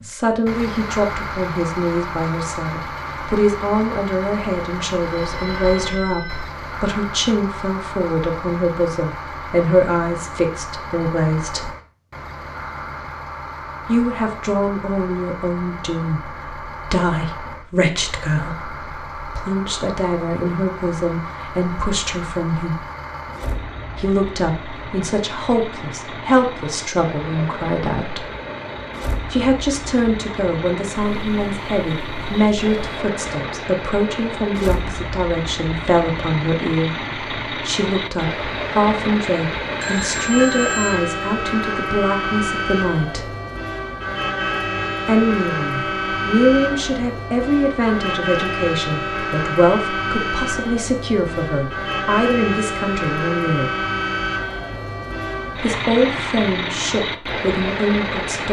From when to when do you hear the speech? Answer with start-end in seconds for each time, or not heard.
0.0-11.7, 13.8-22.9, 23.9-28.2, 29.3-43.3, 45.0-53.7, 55.5-58.4.